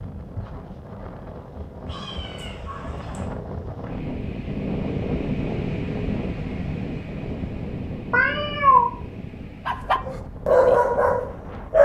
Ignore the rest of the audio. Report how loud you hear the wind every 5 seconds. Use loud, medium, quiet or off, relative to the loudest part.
loud, loud, medium.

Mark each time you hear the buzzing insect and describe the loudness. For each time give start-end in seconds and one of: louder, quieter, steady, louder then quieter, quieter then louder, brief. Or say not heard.
not heard.